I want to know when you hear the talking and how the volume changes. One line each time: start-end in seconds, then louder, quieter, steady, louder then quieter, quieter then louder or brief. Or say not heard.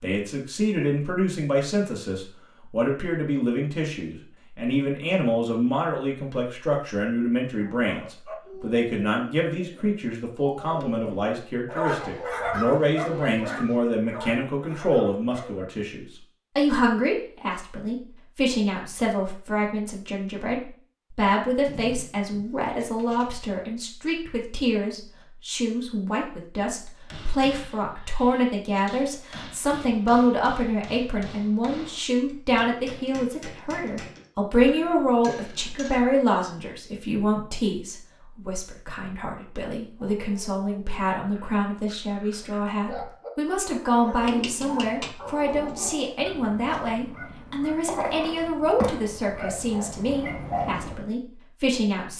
0.0-52.1 steady.